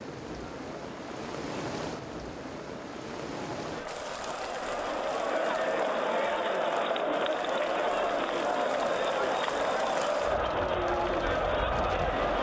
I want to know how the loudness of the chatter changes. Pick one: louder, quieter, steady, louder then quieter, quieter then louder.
louder.